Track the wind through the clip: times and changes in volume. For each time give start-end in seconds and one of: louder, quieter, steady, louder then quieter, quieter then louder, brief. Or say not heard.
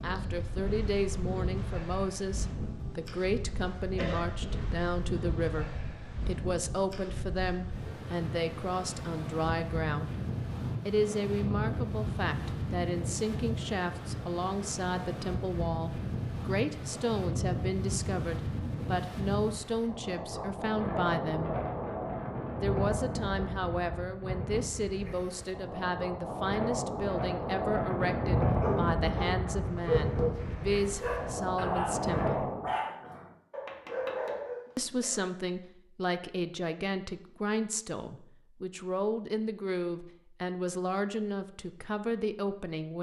0.0-32.8 louder.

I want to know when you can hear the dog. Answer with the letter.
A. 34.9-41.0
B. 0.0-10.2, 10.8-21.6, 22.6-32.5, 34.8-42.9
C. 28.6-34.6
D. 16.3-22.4
C.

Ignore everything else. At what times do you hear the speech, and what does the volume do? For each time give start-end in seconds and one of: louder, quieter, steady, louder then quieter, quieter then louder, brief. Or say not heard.
0.0-10.2 steady
10.8-21.6 steady
22.6-32.5 steady
34.8-42.9 steady.